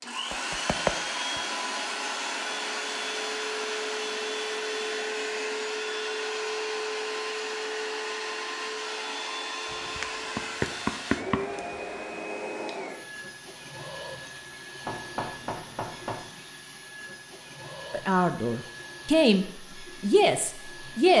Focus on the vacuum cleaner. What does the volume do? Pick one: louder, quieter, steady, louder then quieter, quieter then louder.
quieter.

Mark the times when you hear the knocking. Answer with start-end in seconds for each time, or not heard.
0.3-1.4, 9.7-11.6, 14.8-16.2.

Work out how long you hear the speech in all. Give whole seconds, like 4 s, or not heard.
3 s.